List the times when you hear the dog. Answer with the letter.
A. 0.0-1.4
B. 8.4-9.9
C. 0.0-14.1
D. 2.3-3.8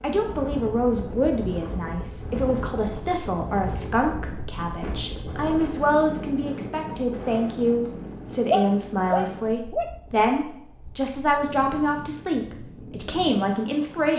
B.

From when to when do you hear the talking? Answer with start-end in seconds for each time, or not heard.
0.0-14.1.